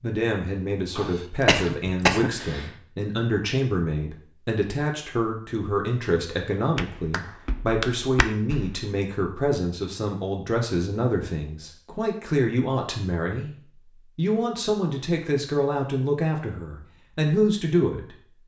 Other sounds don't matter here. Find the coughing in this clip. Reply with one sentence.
You can hear the coughing from 0.9 to 2.7 s.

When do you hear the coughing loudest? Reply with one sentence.
The loudest moment of the coughing is at 2 seconds.